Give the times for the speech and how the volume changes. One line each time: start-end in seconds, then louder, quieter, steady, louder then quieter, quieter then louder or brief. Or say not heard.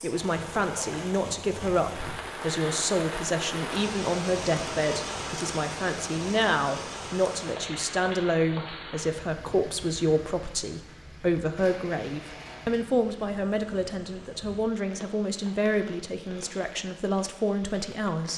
0.0-18.3 steady.